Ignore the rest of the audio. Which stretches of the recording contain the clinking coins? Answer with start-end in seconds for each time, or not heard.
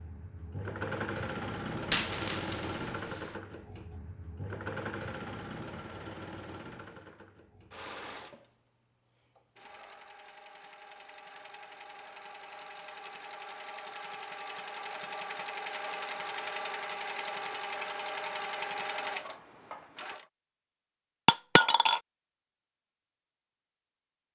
1.8-3.3, 21.2-22.0.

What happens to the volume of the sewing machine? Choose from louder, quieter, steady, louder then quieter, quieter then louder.
quieter then louder.